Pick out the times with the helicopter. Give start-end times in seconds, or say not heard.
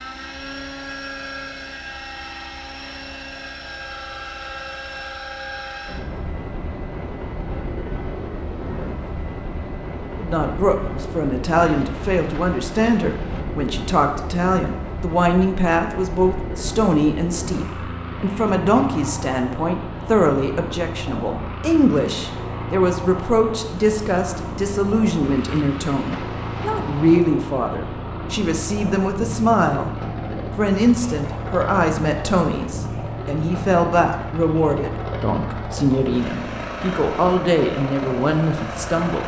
0.0-39.2.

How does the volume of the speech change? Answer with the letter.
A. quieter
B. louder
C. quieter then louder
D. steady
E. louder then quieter
D.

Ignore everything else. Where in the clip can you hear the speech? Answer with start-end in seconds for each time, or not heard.
10.2-29.9, 30.6-39.2.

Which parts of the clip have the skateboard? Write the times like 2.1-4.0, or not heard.
not heard.